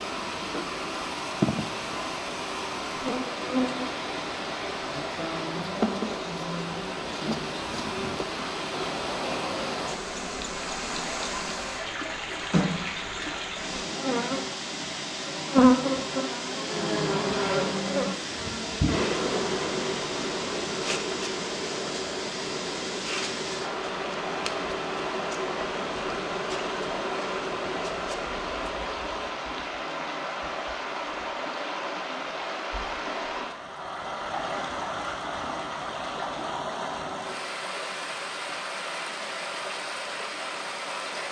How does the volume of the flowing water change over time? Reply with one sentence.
The loudness of the flowing water stays about the same.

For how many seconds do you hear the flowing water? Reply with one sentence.
The flowing water can be heard for 41 seconds in total.